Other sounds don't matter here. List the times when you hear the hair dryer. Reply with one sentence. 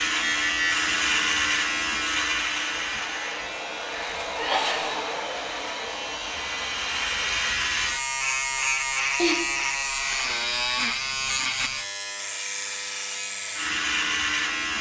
You can hear the hair dryer from 0.1 to 7.5 s.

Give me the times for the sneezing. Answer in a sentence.
You can hear the sneezing from 4.2 to 4.8 s and from 9.2 to 9.6 s.